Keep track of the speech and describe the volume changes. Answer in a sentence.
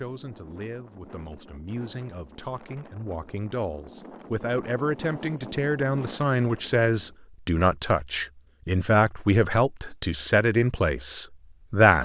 The loudness of the speech goes up.